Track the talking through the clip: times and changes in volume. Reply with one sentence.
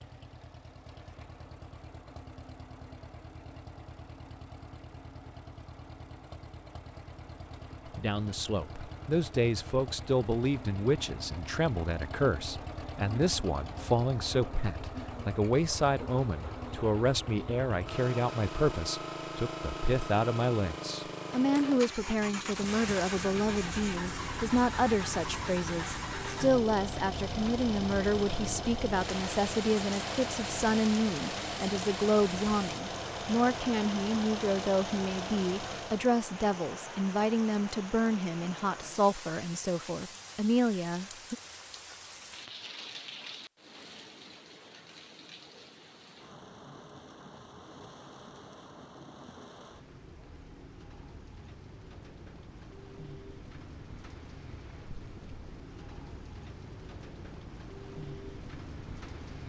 You can hear the talking from 8.0 to 41.4 s, at a steady volume.